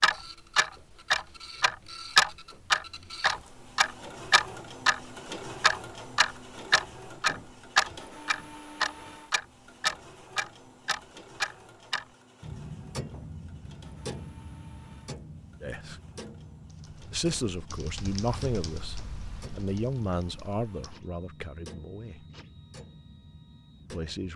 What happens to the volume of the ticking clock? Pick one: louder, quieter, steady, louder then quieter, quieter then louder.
quieter.